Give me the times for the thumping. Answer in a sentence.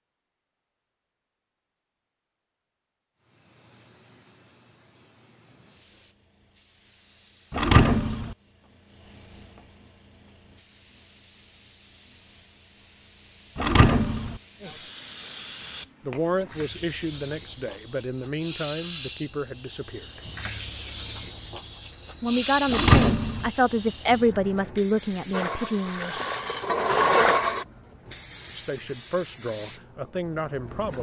You can hear the thumping from 7.5 to 8.3 s, from 13.6 to 14.4 s and from 22.7 to 23.5 s.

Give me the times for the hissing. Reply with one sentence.
You can hear the hissing from 3.1 to 30.9 s.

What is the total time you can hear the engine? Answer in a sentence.
You can hear the engine for 2 seconds altogether.